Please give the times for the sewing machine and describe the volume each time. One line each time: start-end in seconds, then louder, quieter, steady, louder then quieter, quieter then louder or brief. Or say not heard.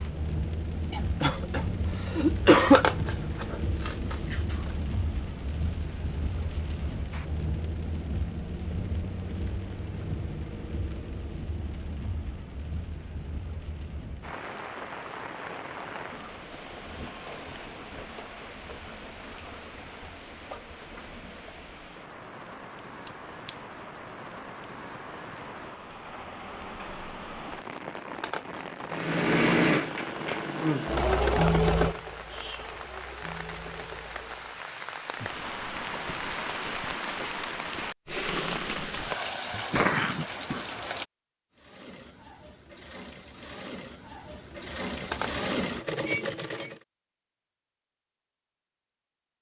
28.9-34.6 quieter
41.5-46.8 louder.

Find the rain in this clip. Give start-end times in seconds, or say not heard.
0.0-41.0.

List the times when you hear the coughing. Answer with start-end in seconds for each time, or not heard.
0.9-2.9, 23.1-23.5, 39.5-40.6.